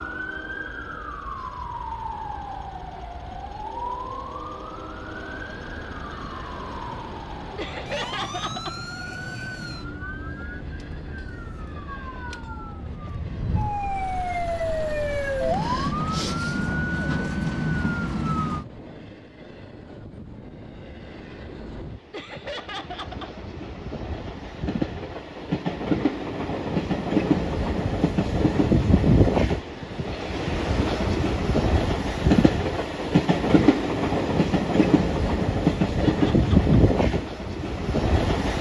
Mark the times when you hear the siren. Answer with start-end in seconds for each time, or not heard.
0.0-18.6.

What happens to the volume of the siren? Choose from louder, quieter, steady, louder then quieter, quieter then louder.
louder.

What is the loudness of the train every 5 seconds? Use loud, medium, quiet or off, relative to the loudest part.
quiet, quiet, quiet, quiet, quiet, loud, loud, loud.